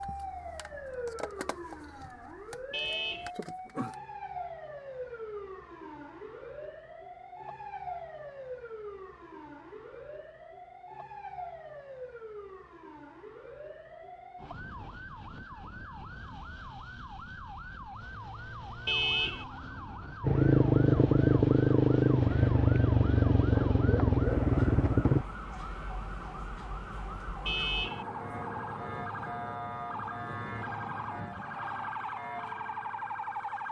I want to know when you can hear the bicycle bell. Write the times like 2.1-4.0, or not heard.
not heard.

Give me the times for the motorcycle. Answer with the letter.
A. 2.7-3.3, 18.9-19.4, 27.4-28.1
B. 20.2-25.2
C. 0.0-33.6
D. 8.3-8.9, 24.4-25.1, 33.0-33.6
B.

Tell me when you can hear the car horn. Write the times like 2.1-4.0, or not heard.
2.7-3.3, 18.9-19.4, 27.4-28.1.